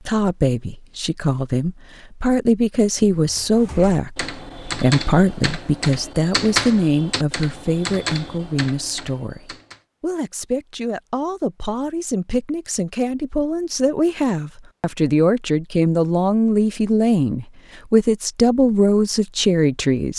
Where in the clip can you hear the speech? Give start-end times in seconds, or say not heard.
0.0-20.1.